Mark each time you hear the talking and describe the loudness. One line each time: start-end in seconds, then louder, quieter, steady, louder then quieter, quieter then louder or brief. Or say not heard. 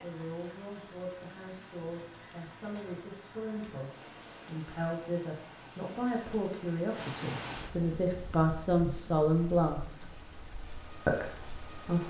0.0-10.1 louder
11.1-12.0 brief.